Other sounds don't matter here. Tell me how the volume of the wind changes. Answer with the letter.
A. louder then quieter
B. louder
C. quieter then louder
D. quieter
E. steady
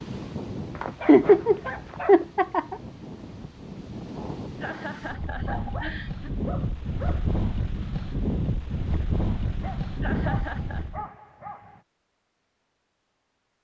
B.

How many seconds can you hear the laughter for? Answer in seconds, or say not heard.
4 s.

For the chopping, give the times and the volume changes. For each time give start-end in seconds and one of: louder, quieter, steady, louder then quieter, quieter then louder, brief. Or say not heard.
not heard.